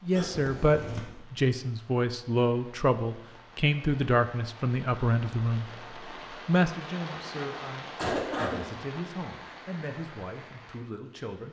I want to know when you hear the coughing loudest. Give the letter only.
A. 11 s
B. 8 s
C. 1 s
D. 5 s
B.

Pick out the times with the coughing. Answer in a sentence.
The coughing can be heard from 0.1 to 1.1 s and from 8.0 to 8.6 s.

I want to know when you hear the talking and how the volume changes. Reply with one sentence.
You can hear the talking from 0.0 to 11.4 s, getting quieter.